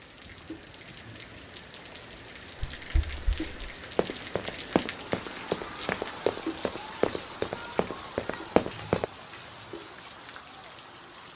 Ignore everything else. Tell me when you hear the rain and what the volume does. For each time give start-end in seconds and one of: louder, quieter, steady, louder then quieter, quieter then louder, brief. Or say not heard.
0.0-11.3 louder then quieter.